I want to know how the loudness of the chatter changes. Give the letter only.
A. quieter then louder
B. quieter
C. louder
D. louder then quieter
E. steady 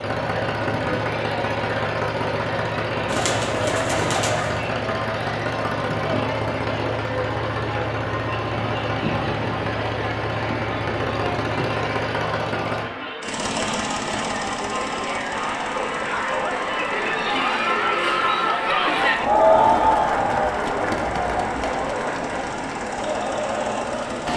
C.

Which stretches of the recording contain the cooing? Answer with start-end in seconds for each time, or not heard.
3.0-4.7.